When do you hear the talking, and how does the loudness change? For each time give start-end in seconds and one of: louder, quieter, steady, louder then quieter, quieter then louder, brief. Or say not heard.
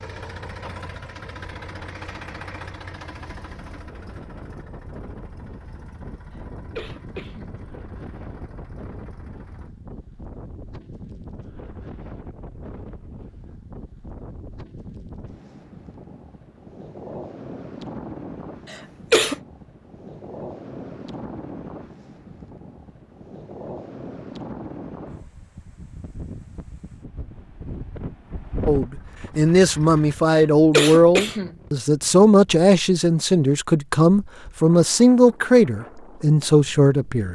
28.6-37.3 steady.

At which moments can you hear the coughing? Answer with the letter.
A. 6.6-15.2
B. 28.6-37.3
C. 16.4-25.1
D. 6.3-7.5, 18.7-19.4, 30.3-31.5
D.